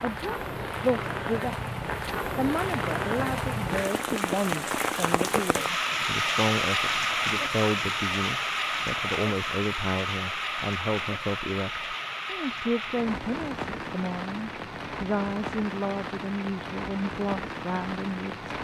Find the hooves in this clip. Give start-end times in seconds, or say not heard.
not heard.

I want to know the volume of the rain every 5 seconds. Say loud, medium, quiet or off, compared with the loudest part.
loud, loud, medium, medium.